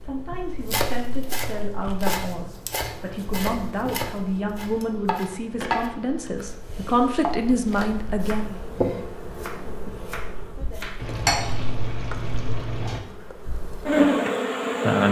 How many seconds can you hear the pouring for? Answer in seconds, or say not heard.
2 s.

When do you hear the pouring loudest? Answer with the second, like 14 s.
11 s.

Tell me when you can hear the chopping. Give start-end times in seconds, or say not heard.
0.6-11.2.